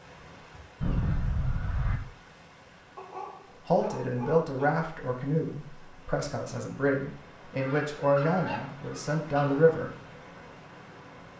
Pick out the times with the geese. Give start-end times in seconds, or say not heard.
0.8-2.0, 7.5-9.8.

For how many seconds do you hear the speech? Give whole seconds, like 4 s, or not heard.
6 s.